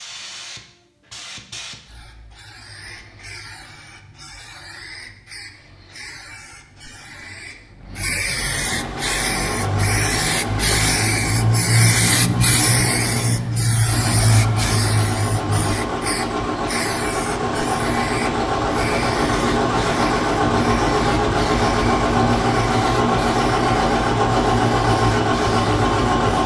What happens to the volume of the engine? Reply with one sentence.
The loudness of the engine goes up.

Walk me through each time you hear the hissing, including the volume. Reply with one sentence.
You can hear the hissing from 0.0 to 26.4 s, getting louder then quieter.